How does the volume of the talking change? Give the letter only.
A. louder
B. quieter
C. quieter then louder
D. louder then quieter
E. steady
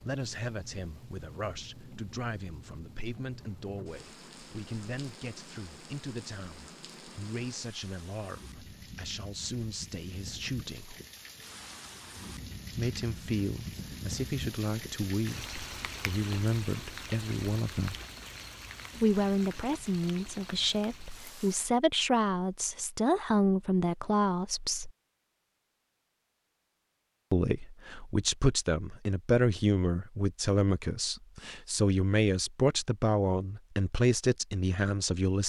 A.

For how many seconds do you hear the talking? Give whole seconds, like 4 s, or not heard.
30 s.